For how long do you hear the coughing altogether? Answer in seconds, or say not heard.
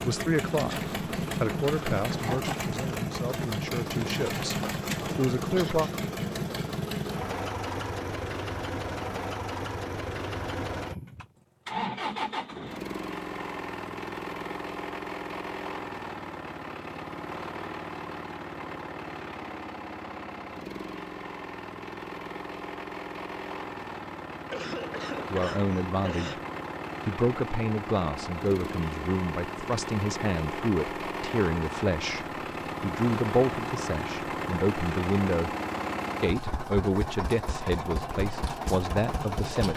2 s.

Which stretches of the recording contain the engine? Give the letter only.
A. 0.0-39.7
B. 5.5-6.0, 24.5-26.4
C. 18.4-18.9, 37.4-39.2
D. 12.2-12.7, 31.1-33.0
A.